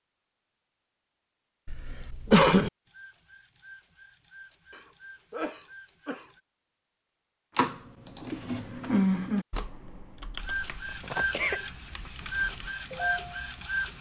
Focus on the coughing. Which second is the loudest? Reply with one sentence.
The loudest moment of the coughing is at 2 seconds.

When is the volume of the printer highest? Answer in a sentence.
The volume of the printer peaks at 13 seconds.